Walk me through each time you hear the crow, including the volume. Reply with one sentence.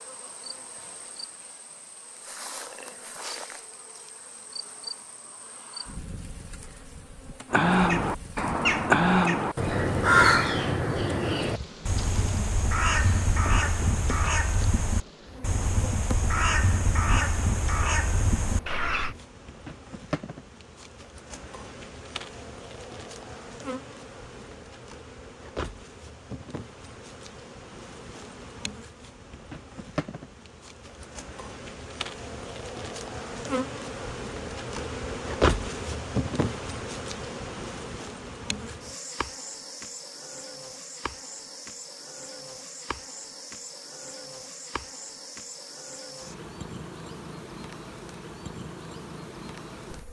The crow can be heard from 7.5 to 19.1 s, getting quieter.